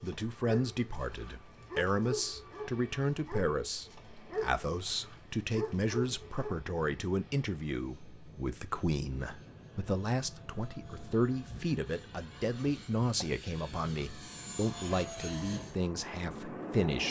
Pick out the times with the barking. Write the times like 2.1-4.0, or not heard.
0.0-6.6.